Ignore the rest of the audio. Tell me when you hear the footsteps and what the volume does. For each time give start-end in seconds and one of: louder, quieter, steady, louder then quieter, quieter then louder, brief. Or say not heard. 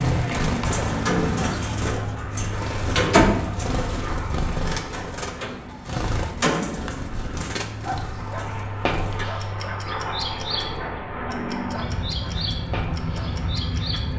not heard.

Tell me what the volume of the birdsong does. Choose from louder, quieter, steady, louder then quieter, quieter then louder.
quieter.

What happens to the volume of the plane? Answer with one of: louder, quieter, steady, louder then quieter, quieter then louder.
quieter then louder.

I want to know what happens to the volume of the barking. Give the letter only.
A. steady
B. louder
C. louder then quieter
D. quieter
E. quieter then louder
D.